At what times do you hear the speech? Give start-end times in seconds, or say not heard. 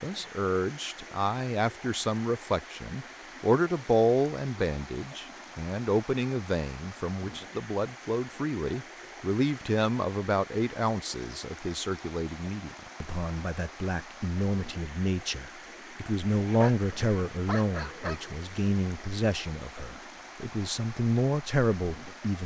0.0-22.4.